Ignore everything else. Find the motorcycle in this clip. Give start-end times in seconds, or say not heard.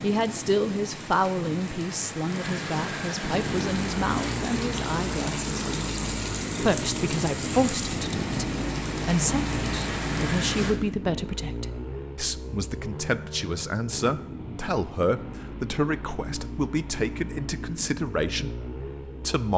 3.3-19.5.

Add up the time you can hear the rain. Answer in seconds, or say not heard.
11 s.